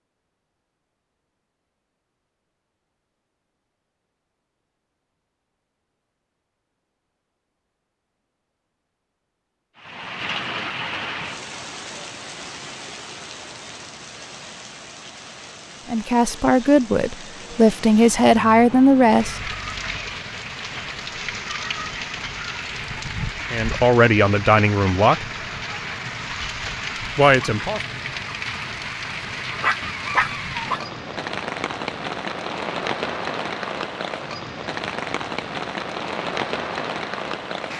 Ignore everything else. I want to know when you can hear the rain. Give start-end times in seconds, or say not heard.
9.8-37.7.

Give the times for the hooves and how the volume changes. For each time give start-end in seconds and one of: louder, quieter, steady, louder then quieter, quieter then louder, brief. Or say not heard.
not heard.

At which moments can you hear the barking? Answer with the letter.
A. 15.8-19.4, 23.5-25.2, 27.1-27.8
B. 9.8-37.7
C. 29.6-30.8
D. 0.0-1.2
C.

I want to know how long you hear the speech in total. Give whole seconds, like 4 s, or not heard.
6 s.